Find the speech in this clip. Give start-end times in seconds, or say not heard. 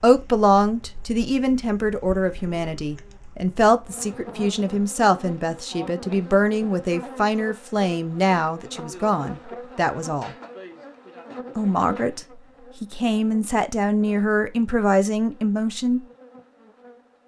0.0-10.3, 11.6-12.2, 12.8-16.0.